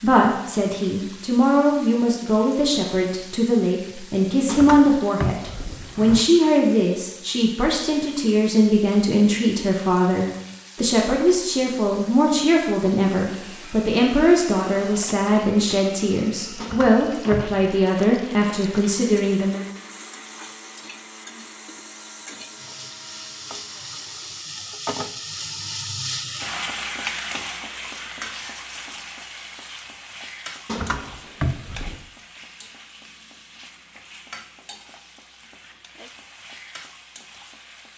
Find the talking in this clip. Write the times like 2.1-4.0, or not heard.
0.0-19.6.